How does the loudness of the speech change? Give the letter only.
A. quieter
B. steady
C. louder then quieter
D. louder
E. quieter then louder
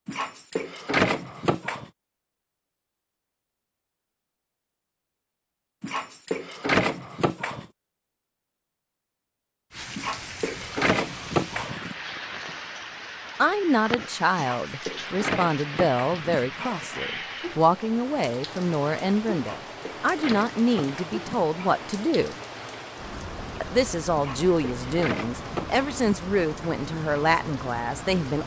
B.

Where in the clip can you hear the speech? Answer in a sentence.
The speech can be heard from 13.3 to 22.4 s and from 23.6 to 28.4 s.